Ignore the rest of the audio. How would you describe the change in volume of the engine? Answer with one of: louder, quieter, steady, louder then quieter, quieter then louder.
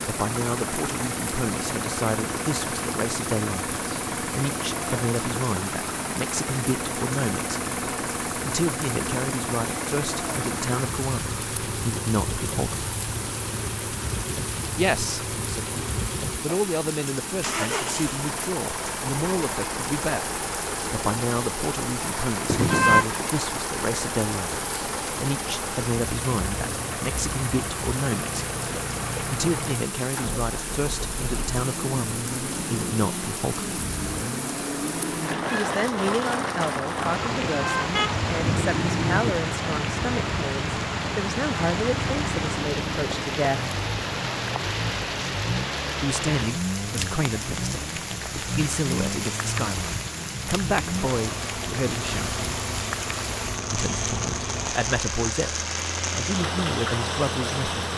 steady.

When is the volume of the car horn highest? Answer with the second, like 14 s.
23 s.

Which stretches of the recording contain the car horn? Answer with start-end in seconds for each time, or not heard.
22.4-23.1, 37.3-39.3.